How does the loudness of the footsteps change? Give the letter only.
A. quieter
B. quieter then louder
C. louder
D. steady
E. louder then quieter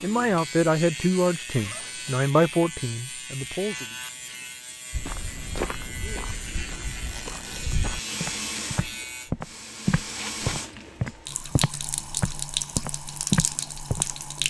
C.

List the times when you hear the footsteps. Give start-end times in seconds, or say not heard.
4.9-14.1.